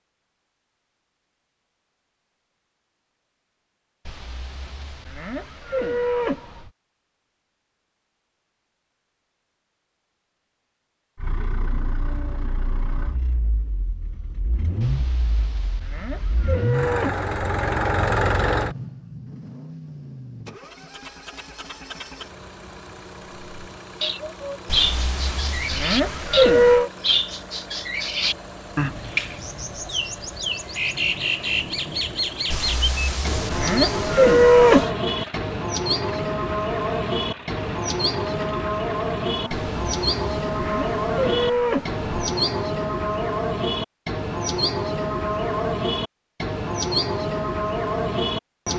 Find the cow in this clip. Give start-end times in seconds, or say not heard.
4.0-6.7, 14.8-17.2, 24.6-26.9, 32.5-34.9, 39.5-42.0.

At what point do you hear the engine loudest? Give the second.
18 s.